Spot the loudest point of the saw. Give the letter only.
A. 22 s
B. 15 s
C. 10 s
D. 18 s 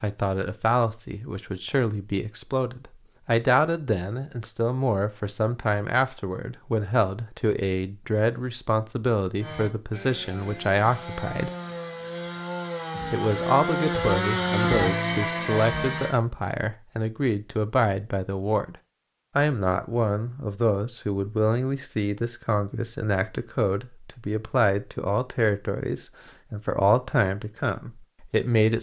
B.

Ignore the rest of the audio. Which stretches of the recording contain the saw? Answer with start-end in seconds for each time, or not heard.
9.3-16.1.